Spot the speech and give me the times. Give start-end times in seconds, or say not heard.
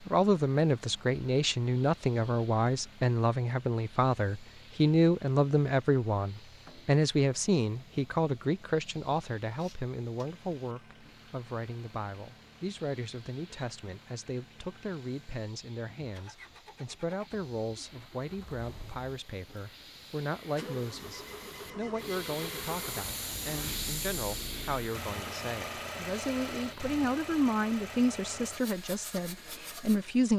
0.0-30.3.